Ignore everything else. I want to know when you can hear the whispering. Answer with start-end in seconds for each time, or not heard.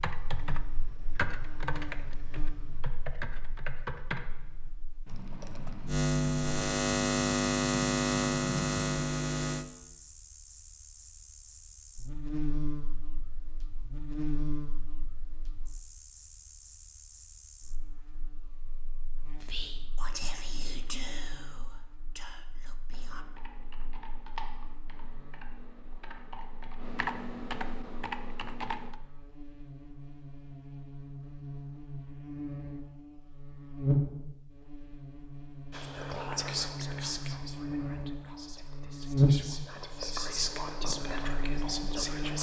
19.4-23.2, 35.7-42.3.